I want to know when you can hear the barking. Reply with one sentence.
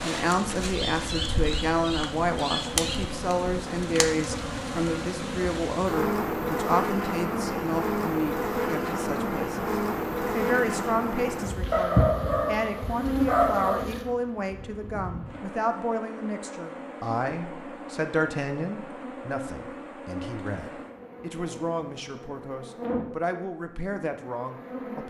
You can hear the barking from 11.7 to 13.8 s.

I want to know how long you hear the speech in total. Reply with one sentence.
The speech can be heard for 25 seconds in total.